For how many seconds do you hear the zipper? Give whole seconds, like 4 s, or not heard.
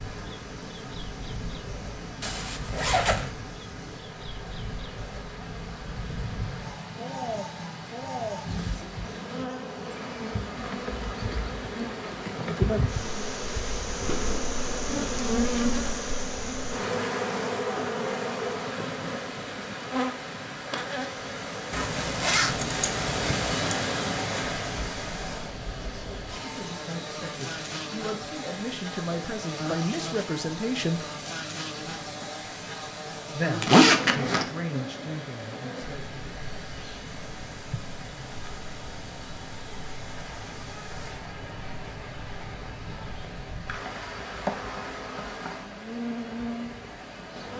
4 s.